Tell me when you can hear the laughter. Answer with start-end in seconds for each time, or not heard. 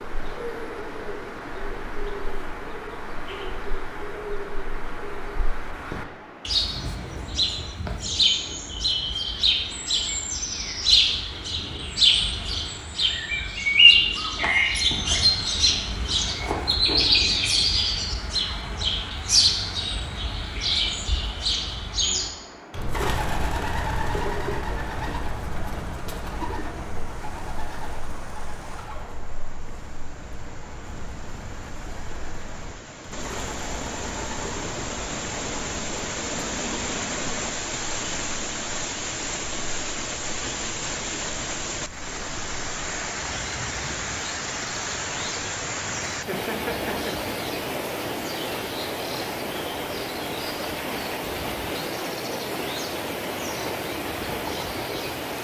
46.1-47.3.